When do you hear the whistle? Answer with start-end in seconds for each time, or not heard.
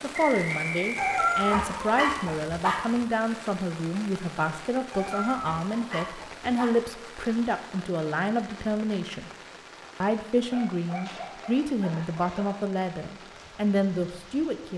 0.1-1.6.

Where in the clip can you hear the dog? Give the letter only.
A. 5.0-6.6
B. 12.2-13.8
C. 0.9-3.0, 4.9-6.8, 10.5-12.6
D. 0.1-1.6
C.